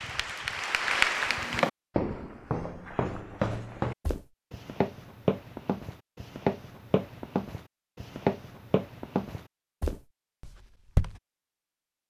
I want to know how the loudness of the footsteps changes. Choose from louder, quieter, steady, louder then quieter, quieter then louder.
steady.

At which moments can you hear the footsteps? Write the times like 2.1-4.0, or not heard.
1.3-11.2.